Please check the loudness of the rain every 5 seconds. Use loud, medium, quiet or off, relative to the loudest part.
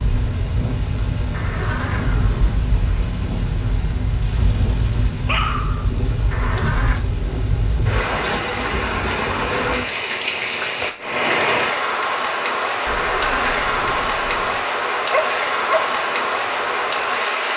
medium, loud, loud, loud.